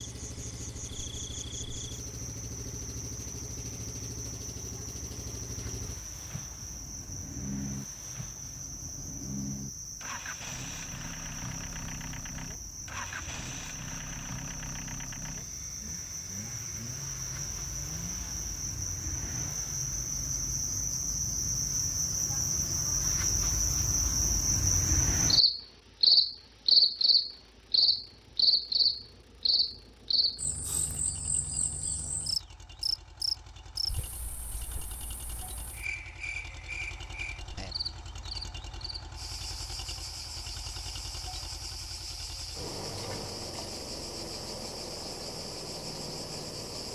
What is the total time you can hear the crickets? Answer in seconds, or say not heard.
47 s.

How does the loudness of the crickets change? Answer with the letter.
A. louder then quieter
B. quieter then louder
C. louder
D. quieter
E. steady
A.